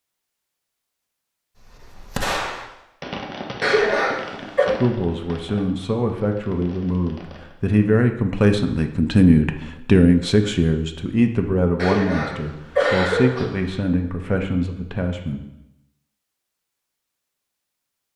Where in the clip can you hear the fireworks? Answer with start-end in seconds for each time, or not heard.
1.6-7.5.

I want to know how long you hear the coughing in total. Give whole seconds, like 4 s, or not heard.
3 s.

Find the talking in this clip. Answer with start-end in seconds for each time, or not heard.
4.7-15.4.